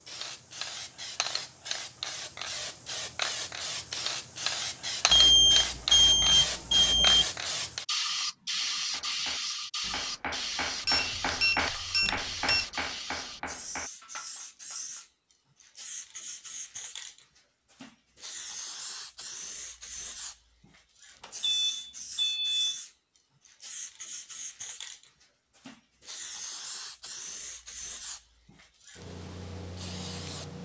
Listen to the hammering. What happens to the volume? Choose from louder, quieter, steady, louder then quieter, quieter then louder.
louder then quieter.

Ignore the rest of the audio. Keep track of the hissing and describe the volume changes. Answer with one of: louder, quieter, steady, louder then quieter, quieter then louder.
quieter.